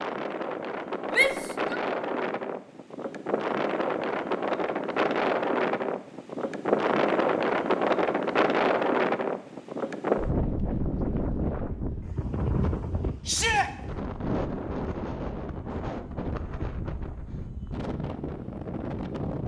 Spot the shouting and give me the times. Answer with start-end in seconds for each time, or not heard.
1.1-1.8, 13.2-13.7.